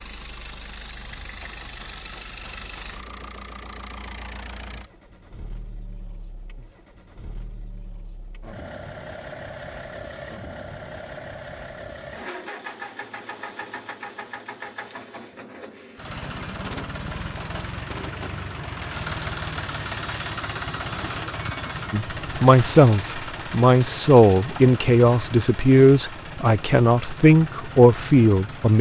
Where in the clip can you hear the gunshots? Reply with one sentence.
The gunshots can be heard from 1.0 to 3.0 s and from 16.6 to 18.4 s.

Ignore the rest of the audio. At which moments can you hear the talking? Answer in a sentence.
The talking can be heard from 21.9 to 28.7 s.